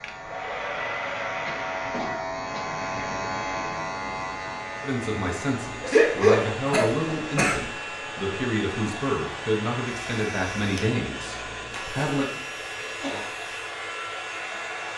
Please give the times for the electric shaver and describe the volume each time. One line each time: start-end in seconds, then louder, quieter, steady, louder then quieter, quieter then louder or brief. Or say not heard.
0.0-14.9 quieter.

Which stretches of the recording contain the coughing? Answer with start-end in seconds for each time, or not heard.
1.4-2.6, 5.8-7.7, 12.0-13.2.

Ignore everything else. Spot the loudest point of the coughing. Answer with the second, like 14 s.
6 s.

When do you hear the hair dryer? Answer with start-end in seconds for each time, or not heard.
0.0-14.9.